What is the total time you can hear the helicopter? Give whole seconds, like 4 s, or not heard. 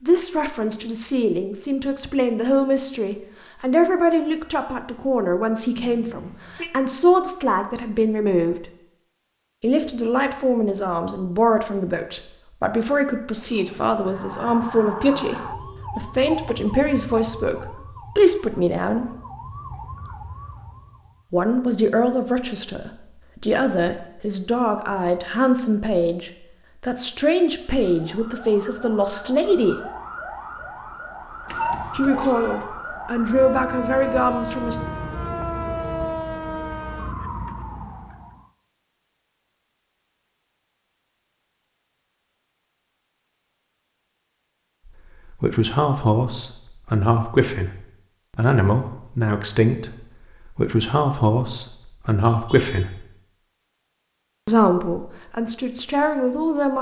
2 s.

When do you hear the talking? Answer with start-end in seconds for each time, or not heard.
0.0-8.7, 9.6-19.1, 21.3-29.8, 31.9-34.8, 44.9-53.0, 54.5-56.7.